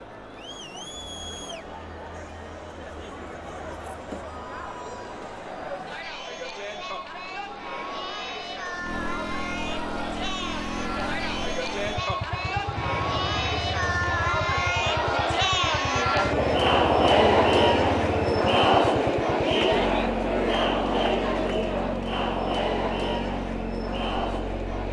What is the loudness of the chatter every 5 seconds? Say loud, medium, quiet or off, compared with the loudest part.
quiet, quiet, medium, loud, medium.